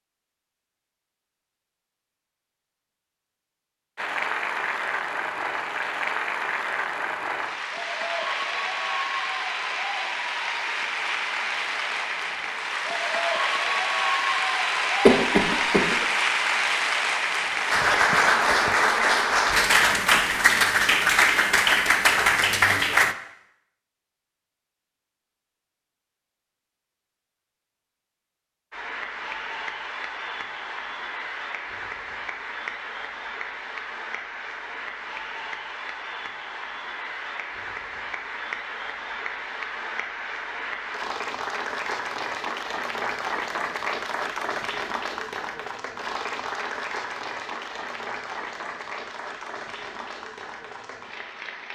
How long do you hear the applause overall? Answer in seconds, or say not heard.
42 s.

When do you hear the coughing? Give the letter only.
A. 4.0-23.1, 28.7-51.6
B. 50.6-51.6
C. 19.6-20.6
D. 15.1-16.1
D.